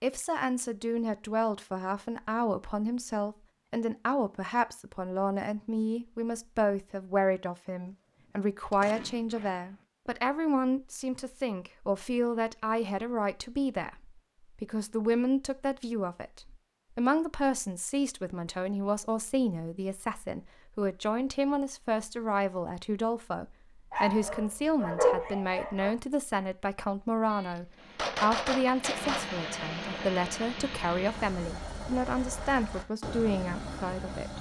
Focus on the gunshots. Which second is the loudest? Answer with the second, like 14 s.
28 s.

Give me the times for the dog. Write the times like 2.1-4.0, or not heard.
23.9-25.9.